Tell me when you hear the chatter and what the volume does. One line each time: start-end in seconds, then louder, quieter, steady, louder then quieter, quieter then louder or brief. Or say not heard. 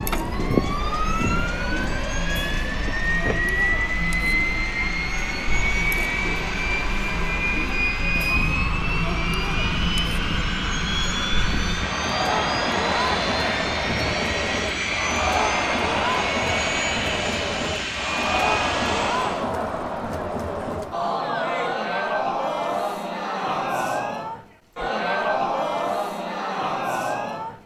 0.0-27.6 louder.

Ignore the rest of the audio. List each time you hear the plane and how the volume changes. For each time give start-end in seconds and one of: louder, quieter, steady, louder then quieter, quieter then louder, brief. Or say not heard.
0.0-19.5 steady.